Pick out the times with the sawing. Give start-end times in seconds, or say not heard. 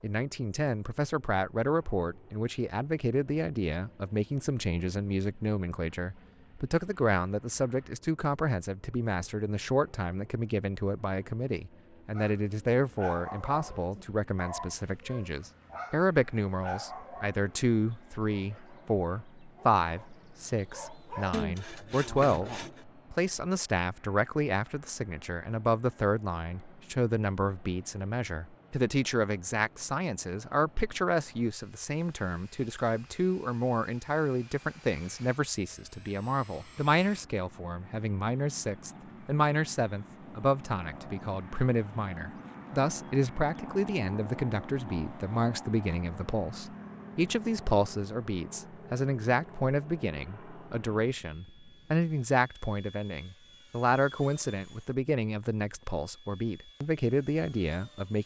21.3-22.9.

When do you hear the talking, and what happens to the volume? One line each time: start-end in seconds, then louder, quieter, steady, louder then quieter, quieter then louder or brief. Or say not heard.
0.0-58.2 steady.